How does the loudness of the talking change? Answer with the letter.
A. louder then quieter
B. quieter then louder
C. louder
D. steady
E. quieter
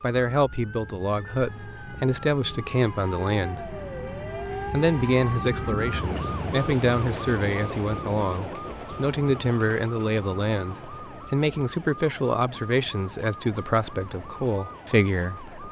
D.